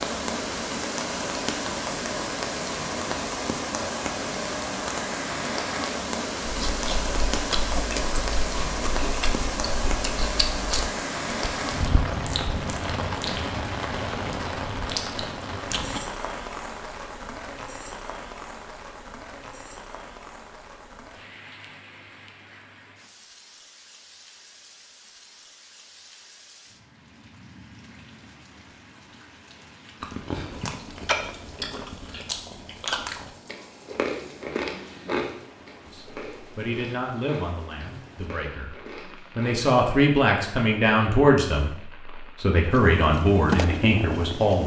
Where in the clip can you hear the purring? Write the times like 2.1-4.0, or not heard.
42.7-44.6.